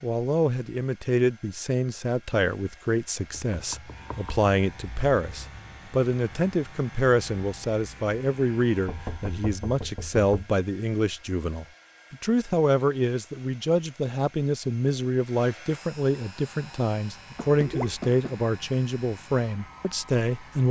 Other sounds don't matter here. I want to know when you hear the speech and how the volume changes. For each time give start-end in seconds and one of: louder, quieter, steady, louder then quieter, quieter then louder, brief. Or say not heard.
0.0-20.6 steady.